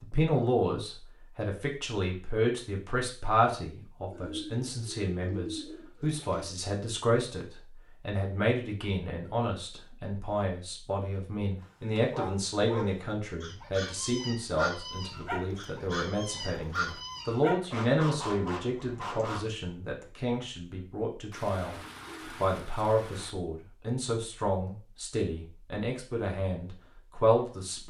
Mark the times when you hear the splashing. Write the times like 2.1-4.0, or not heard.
not heard.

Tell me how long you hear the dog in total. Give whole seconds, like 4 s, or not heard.
8 s.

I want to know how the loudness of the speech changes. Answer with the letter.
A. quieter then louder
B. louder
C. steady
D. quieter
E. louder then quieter
C.